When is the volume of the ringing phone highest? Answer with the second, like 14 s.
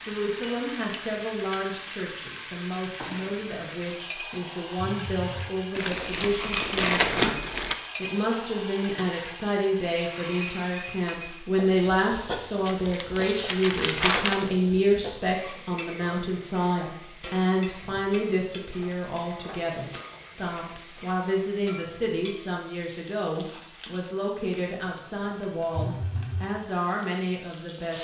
26 s.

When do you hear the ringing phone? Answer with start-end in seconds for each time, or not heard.
4.8-5.5, 25.8-26.5.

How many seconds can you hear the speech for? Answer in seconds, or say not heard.
28 s.